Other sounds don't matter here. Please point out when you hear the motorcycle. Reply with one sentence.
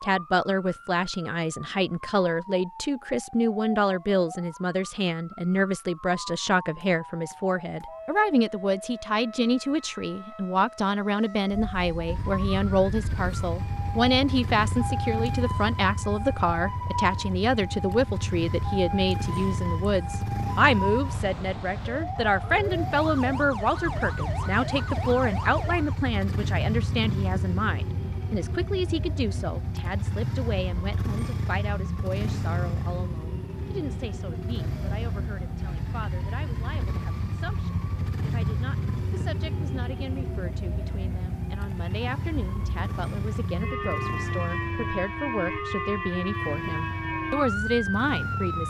The motorcycle can be heard from 12.1 to 48.6 s.